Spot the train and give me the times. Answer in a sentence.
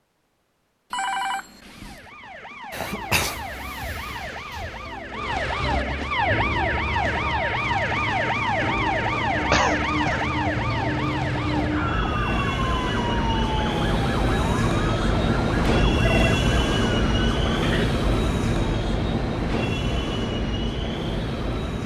You can hear the train from 6.0 to 21.8 s.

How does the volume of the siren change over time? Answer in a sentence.
The loudness of the siren goes up, then down.